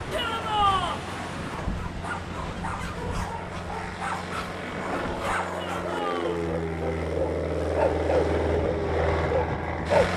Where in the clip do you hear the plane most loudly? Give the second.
8 s.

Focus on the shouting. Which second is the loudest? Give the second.
1 s.